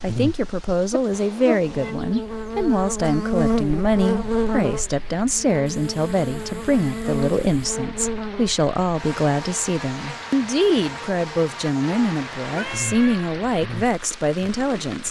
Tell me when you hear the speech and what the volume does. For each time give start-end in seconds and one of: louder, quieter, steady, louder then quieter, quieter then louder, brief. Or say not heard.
0.0-15.0 steady.